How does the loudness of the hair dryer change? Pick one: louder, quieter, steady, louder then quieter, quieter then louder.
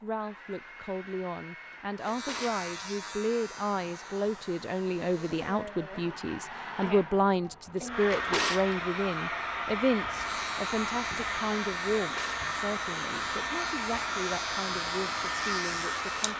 louder.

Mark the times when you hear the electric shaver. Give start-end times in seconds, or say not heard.
1.9-5.7, 10.1-16.3.